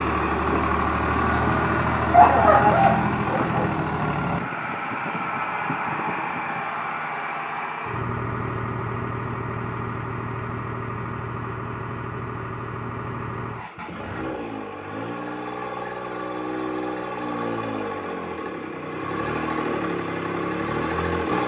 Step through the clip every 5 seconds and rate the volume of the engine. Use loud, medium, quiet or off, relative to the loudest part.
loud, medium, medium, medium, loud.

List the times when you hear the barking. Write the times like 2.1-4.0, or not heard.
2.1-3.7.